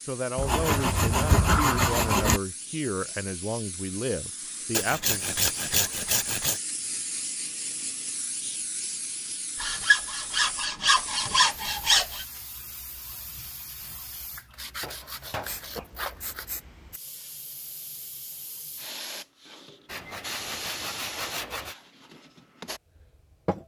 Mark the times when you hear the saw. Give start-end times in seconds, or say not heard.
0.3-2.4, 4.7-6.6, 9.6-12.2, 14.5-16.6, 19.9-21.8.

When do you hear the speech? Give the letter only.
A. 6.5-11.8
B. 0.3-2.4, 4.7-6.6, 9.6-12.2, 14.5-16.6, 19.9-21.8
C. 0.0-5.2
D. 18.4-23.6
C.